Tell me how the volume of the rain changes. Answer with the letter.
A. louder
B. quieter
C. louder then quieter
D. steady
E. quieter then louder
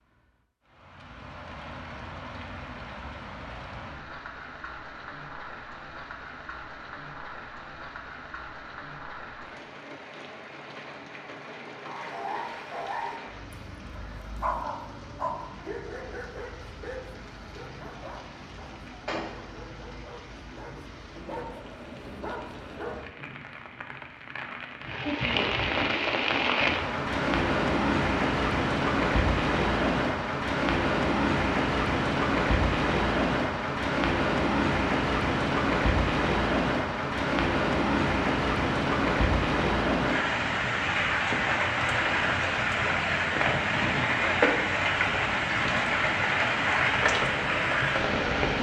A.